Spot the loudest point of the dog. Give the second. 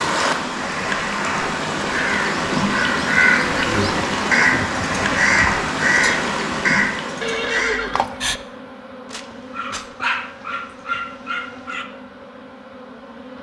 10 s.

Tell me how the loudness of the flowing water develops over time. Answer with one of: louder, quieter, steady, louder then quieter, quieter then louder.
steady.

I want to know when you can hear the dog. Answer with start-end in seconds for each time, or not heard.
9.1-11.8.